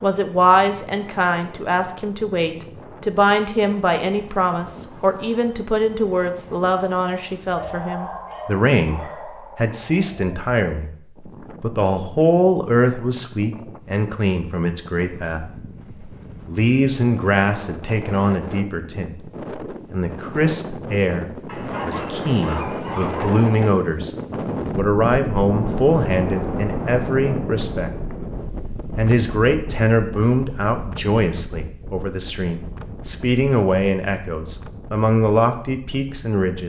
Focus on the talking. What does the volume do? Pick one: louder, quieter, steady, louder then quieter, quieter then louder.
steady.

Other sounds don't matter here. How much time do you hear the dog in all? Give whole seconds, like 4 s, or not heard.
4 s.